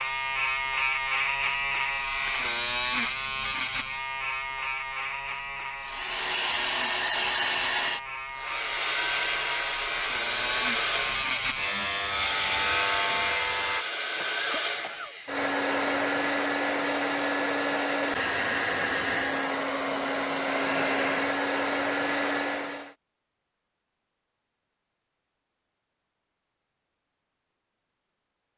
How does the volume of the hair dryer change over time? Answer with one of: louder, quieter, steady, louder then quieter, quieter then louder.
steady.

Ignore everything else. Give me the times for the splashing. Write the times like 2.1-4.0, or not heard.
not heard.